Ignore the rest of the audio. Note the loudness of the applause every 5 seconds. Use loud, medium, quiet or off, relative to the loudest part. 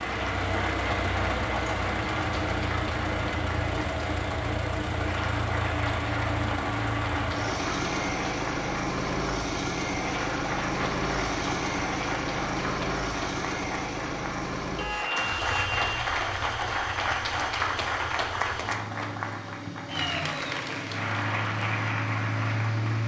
medium, medium, medium, loud, loud.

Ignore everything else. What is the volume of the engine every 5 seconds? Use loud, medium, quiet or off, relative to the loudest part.
loud, loud, loud, medium, loud.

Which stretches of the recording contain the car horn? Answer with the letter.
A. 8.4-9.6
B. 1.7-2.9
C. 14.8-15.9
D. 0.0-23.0
C.